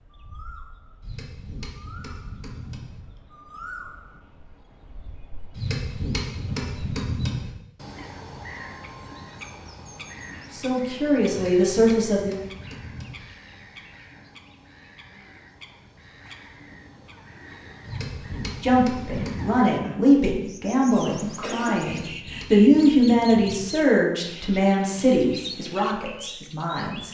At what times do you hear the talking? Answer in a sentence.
The talking can be heard from 10.5 to 12.4 s and from 18.4 to 27.0 s.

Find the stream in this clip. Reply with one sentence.
The stream can't be heard in this clip.